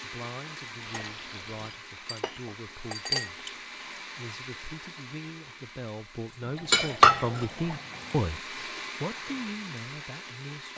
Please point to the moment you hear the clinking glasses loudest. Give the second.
7 s.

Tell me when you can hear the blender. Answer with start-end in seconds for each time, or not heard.
0.0-10.7.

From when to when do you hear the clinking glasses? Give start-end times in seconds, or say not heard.
0.9-3.5, 6.7-7.5.